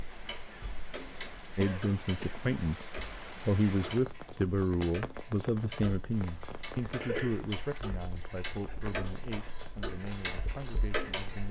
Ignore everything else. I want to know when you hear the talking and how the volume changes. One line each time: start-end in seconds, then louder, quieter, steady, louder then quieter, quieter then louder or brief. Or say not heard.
1.6-11.4 quieter.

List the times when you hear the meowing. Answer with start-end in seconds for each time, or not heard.
not heard.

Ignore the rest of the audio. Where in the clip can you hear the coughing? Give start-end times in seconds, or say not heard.
1.6-2.5, 7.0-7.5.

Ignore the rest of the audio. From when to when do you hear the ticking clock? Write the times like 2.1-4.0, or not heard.
0.0-11.4.